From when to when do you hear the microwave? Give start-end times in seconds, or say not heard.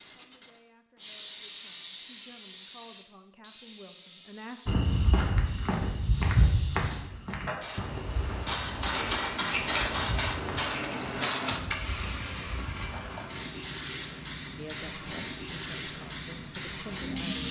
not heard.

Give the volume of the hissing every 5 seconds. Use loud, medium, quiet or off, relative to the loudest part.
medium, loud, loud, loud.